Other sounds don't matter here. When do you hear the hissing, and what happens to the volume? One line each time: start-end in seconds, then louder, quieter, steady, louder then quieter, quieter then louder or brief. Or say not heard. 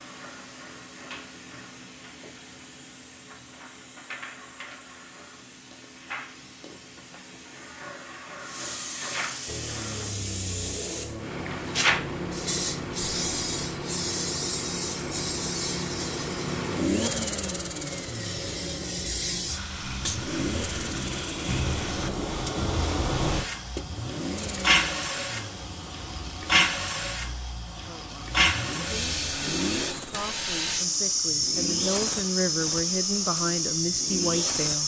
0.0-34.8 louder.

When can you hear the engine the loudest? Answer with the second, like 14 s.
17 s.